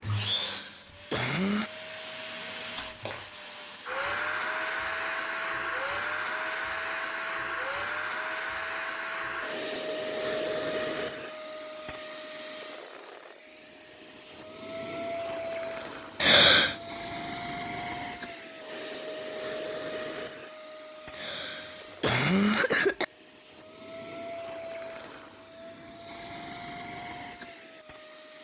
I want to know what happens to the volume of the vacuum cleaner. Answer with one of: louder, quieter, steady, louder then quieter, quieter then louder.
quieter.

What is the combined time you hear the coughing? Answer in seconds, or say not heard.
4 s.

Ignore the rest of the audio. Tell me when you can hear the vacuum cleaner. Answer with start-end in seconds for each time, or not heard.
0.0-28.3.